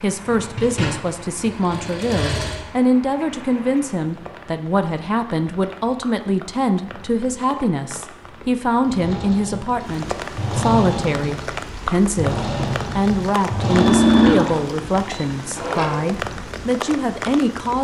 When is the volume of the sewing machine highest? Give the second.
14 s.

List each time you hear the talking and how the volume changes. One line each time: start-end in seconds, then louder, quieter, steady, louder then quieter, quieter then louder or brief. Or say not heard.
0.0-17.8 steady.